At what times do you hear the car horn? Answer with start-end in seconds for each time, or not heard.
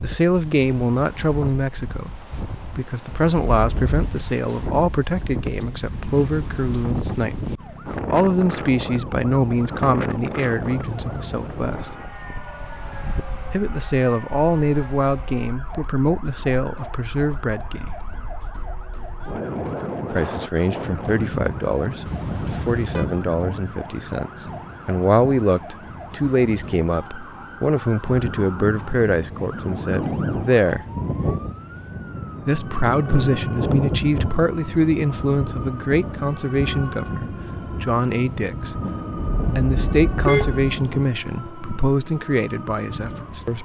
3.5-4.2, 22.1-23.1, 39.1-40.6.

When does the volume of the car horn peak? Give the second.
40 s.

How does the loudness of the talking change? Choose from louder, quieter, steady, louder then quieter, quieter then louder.
steady.